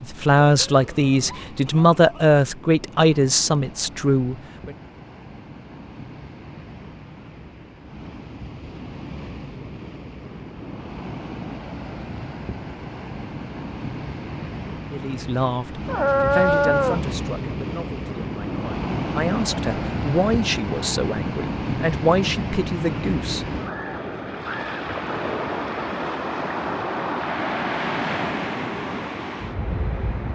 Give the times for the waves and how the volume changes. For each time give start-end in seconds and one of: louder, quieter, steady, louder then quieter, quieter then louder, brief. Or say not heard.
0.0-30.2 louder.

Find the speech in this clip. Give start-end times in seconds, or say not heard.
0.0-4.8, 14.9-23.4.